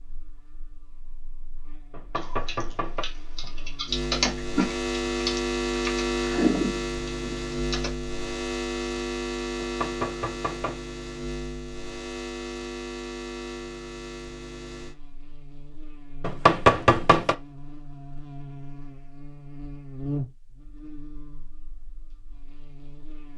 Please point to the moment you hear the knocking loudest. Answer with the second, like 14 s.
17 s.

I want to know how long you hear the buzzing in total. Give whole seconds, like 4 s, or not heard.
23 s.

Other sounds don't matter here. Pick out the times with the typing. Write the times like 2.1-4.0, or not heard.
2.1-7.9.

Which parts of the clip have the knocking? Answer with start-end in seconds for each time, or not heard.
1.9-3.0, 9.6-10.8, 16.2-17.4.